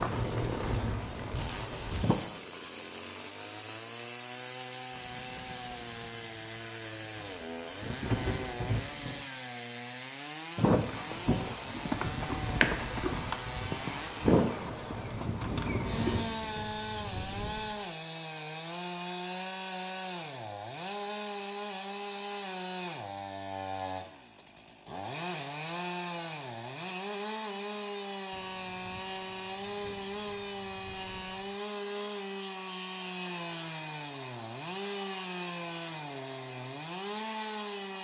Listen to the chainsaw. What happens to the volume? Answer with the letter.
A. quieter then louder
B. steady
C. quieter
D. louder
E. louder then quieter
B.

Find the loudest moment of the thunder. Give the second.
8 s.